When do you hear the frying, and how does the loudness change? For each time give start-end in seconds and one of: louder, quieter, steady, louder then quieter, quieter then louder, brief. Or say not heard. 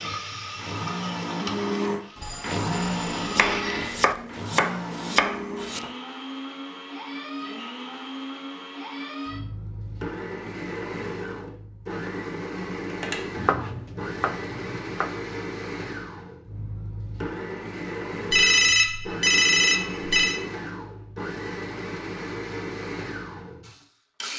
0.0-4.0 quieter then louder.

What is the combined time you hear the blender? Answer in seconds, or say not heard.
24 s.